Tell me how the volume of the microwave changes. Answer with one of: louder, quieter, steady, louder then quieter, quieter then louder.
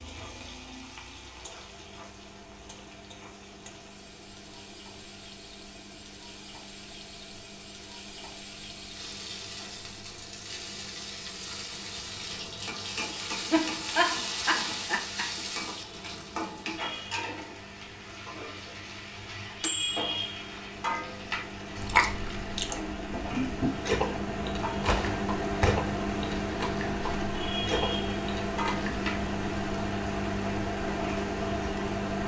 louder.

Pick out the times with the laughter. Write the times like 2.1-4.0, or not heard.
13.5-15.4.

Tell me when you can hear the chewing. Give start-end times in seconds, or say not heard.
21.8-29.0.